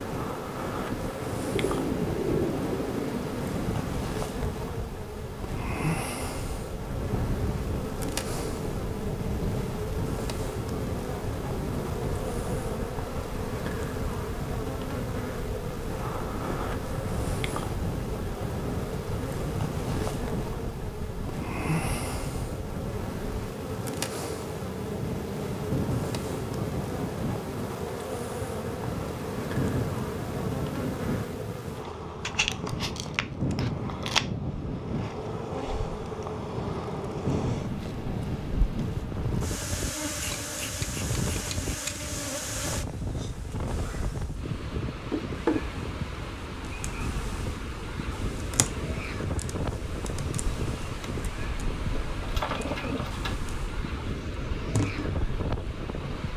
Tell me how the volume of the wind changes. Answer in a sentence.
The volume of the wind stays about the same.